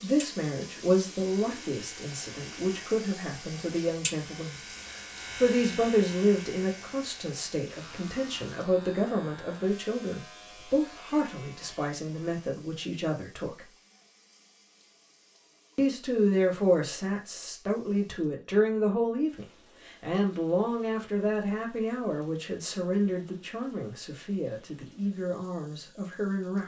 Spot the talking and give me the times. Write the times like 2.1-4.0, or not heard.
0.0-13.7, 15.8-26.6.